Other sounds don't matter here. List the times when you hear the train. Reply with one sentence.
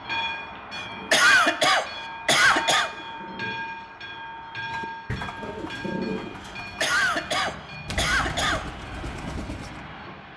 The train can be heard from 0.0 to 10.3 s.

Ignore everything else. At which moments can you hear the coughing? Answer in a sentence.
The coughing can be heard from 0.8 to 2.9 s and from 6.5 to 8.7 s.